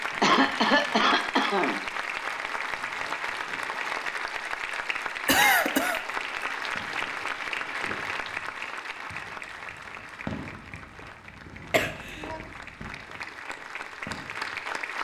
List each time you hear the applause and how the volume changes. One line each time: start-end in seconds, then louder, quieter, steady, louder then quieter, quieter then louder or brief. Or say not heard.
0.0-14.9 quieter.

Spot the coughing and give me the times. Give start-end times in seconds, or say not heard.
0.2-1.8, 5.2-6.0, 11.7-12.4.